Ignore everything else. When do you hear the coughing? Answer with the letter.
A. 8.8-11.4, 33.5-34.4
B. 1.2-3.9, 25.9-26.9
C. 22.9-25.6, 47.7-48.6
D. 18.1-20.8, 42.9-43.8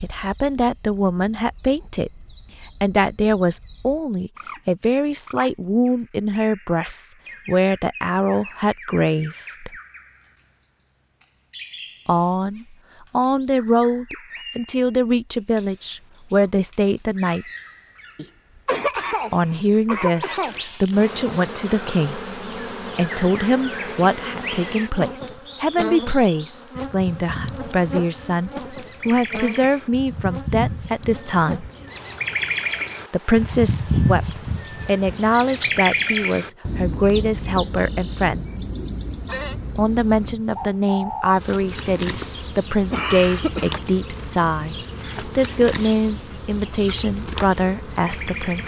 D.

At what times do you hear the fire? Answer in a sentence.
You can't hear the fire here.